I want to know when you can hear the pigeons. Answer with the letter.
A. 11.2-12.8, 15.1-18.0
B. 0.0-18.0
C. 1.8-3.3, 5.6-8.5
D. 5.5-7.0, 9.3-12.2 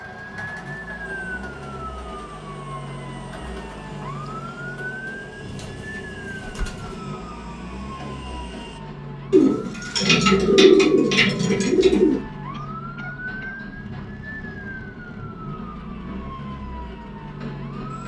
D.